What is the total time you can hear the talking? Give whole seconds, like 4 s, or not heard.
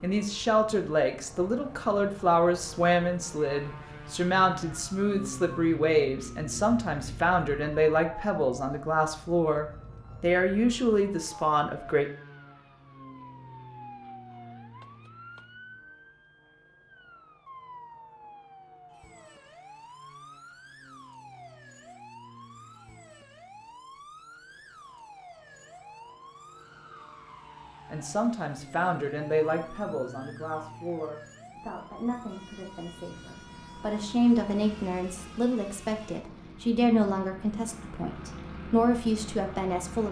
24 s.